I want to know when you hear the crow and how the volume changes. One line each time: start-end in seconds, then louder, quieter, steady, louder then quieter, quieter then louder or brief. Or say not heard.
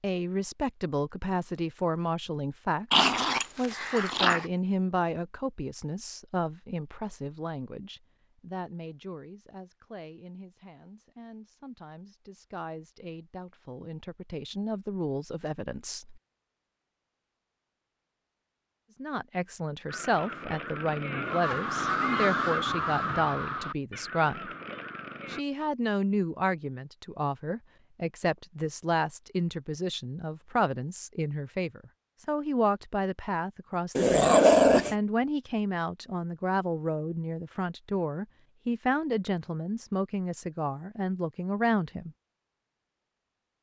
19.9-25.4 louder then quieter.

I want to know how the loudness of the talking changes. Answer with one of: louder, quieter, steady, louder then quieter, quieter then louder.
quieter then louder.